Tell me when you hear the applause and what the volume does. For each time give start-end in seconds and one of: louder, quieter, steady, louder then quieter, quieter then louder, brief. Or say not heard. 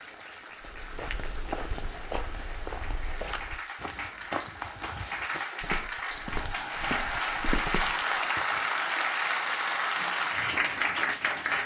0.0-11.6 louder.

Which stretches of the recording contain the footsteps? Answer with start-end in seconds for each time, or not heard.
0.6-8.0.